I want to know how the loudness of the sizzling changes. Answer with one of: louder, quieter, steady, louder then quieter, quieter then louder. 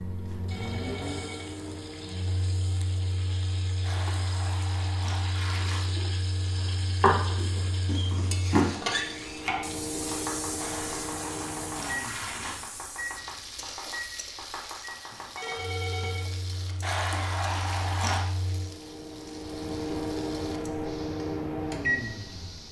louder then quieter.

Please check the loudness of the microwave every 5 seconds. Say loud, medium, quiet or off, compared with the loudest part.
medium, medium, medium, medium, loud.